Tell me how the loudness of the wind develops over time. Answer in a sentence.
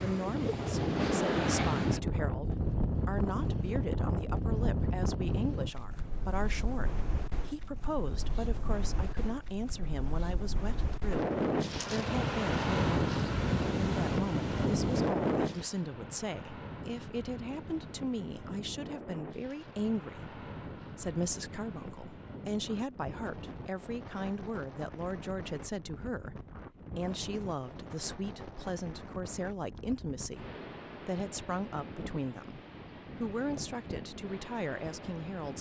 The loudness of the wind goes down.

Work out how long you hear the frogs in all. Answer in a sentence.
You can't hear the frogs here.